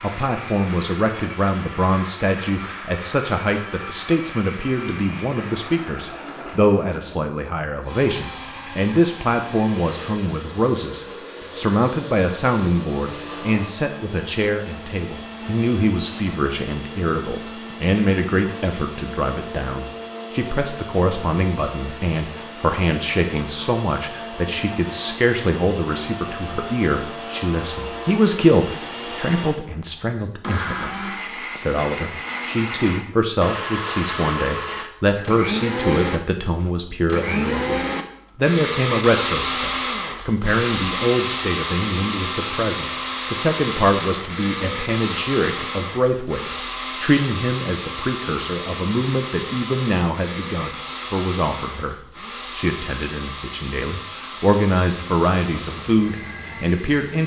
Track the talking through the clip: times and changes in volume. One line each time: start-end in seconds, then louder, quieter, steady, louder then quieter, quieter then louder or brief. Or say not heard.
0.0-57.2 steady.